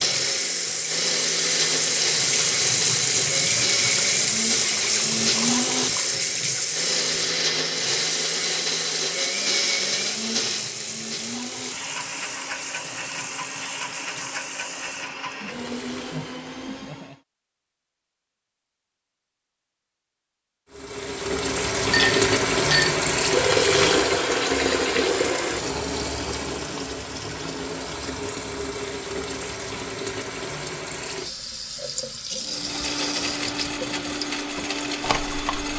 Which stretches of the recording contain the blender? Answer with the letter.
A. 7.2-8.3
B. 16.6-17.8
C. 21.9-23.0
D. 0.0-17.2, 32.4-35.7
D.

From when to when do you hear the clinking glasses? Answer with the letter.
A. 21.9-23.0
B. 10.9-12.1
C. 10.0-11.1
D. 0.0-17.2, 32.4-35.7
A.